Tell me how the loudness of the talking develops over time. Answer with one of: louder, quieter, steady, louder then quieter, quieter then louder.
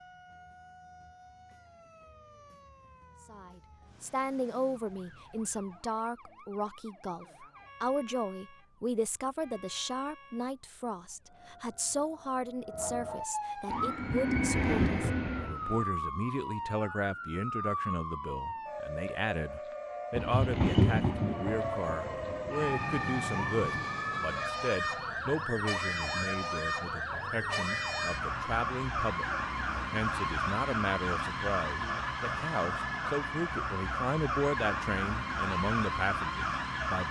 steady.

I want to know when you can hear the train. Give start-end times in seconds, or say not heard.
13.7-15.8, 20.1-23.9.